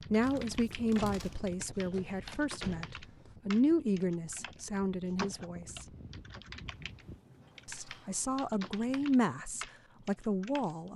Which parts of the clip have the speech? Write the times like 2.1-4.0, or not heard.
0.1-5.8, 7.7-10.9.